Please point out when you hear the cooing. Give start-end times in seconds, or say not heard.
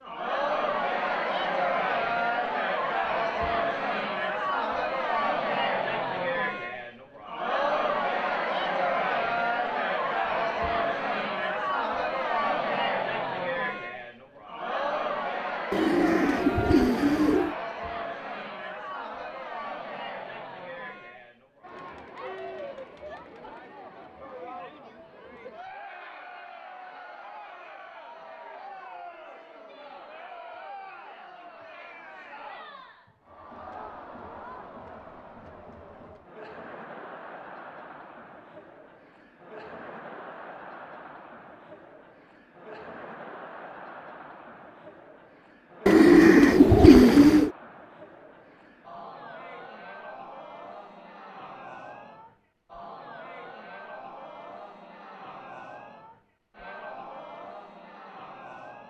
15.7-17.6, 45.9-47.5.